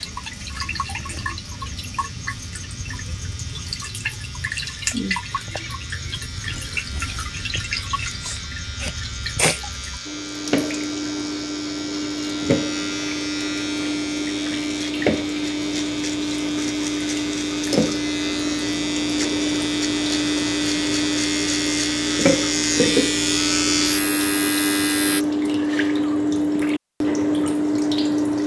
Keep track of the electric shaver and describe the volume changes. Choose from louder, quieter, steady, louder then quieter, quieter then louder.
louder.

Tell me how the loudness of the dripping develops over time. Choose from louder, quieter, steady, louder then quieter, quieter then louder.
louder.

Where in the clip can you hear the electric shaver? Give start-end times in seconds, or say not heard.
0.0-25.2.